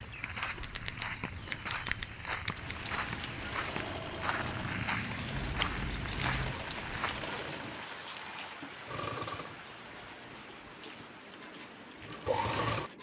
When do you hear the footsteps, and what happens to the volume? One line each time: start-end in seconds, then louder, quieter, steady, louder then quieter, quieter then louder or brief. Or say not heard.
0.0-7.4 steady.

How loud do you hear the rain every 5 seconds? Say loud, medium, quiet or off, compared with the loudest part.
loud, loud, medium.